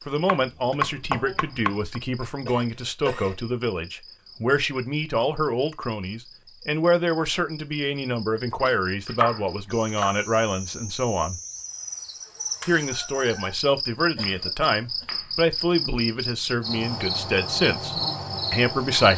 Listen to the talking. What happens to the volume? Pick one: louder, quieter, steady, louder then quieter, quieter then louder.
steady.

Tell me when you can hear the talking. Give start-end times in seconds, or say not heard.
0.1-11.4, 12.7-19.1.